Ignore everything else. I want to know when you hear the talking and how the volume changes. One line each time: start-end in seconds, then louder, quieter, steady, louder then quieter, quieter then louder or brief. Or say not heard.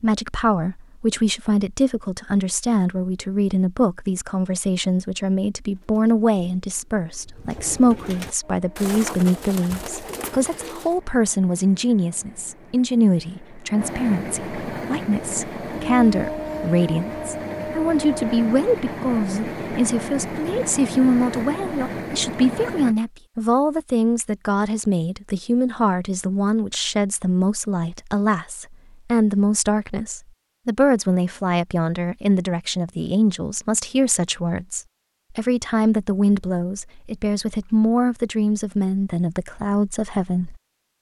0.0-40.9 steady.